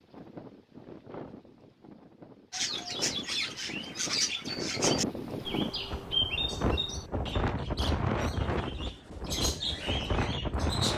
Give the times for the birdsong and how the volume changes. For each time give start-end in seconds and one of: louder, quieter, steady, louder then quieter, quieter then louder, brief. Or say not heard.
2.5-10.9 quieter then louder.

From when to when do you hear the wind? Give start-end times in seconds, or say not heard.
0.0-10.9.